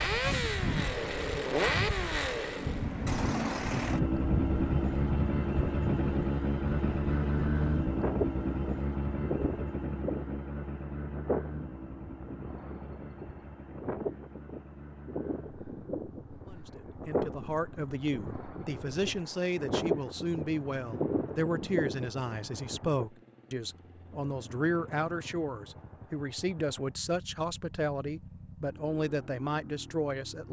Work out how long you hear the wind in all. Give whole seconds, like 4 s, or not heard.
23 s.